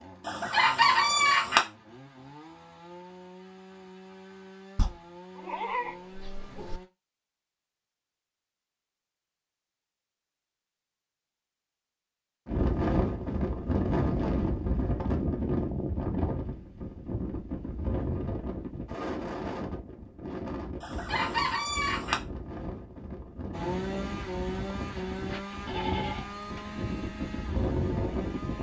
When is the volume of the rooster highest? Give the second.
1 s.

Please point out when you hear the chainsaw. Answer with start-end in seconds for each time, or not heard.
0.0-6.8, 23.5-28.5.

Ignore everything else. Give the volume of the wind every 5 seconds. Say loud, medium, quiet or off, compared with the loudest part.
off, off, loud, medium, medium, medium.